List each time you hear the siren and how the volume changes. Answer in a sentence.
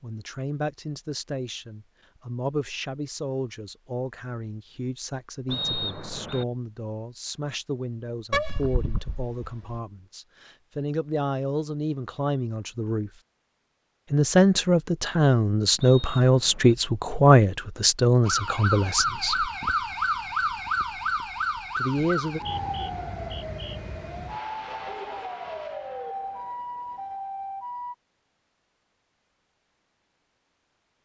You can hear the siren from 18.2 to 27.9 s, getting quieter.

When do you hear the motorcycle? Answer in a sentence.
You can't hear the motorcycle here.